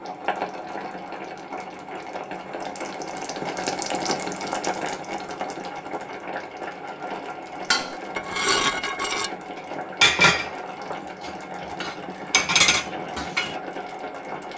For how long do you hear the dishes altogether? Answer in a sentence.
The dishes can be heard for 6 seconds in total.